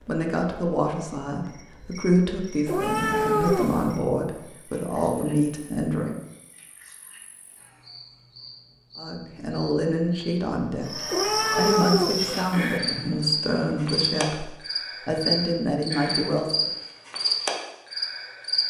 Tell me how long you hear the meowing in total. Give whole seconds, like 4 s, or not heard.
3 s.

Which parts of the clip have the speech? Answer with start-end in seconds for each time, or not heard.
0.1-6.2, 8.9-16.7.